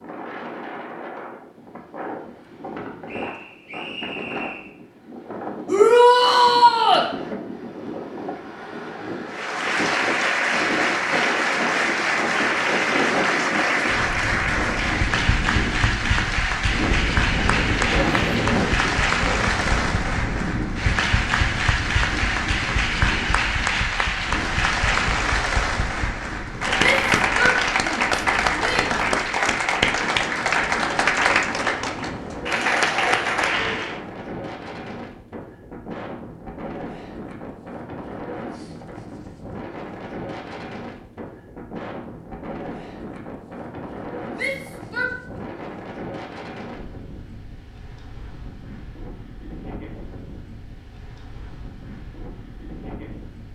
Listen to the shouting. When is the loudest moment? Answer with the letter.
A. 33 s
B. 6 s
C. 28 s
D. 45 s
B.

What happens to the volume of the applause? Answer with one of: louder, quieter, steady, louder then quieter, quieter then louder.
steady.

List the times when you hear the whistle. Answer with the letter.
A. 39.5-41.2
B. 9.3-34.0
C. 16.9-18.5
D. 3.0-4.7
D.